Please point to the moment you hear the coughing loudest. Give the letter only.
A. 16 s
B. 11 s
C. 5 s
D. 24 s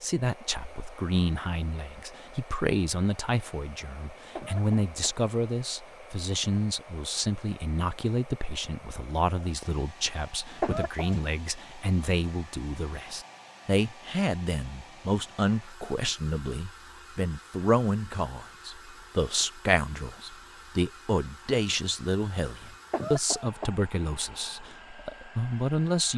B.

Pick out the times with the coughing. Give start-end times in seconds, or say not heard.
4.3-5.2, 10.6-11.2, 22.9-23.8.